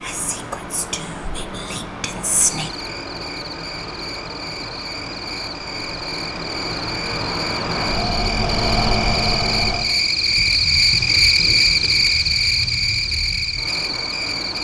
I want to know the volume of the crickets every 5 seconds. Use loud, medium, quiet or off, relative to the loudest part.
quiet, medium, loud.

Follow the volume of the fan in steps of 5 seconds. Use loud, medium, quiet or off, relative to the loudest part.
medium, loud, medium.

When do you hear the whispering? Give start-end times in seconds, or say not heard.
0.0-2.7.